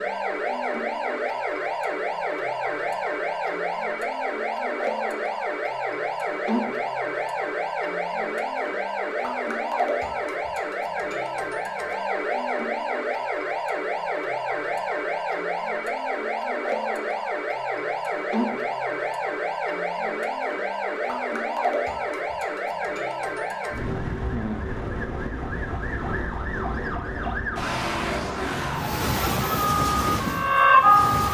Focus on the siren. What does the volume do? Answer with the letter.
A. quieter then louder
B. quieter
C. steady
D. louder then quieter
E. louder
C.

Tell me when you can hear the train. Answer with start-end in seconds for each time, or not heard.
28.7-31.2.